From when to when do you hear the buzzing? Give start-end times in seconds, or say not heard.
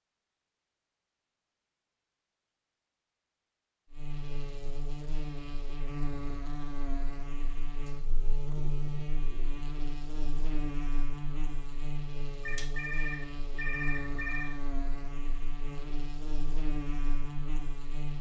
3.9-18.1.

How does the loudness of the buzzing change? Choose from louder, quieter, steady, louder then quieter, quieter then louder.
steady.